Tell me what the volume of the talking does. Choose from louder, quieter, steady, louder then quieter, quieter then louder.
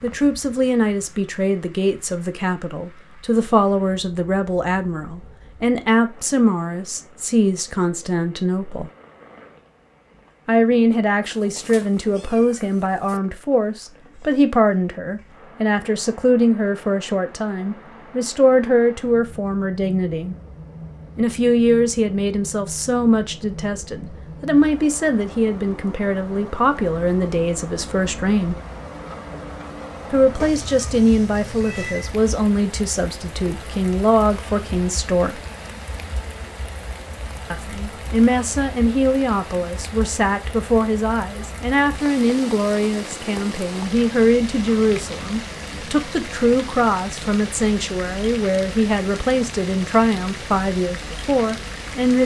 steady.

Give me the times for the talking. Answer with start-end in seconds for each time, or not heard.
0.0-8.9, 10.4-20.4, 21.1-28.6, 30.1-35.4, 37.5-52.2.